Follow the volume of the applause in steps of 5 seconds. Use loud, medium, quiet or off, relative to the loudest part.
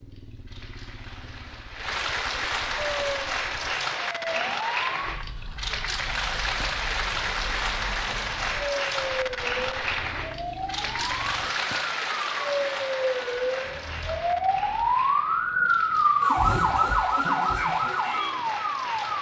loud, loud, loud, medium.